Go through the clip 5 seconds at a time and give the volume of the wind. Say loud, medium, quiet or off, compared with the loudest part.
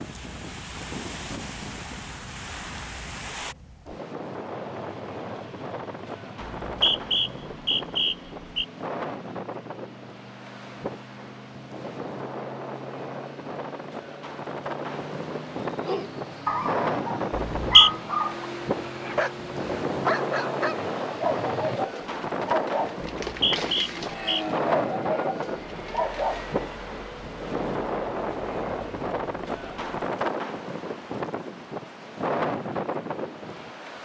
medium, medium, medium, loud, loud, loud, loud.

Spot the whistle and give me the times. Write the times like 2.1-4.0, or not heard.
6.6-8.7, 17.4-17.9, 23.2-24.4.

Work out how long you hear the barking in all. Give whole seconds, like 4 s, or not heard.
11 s.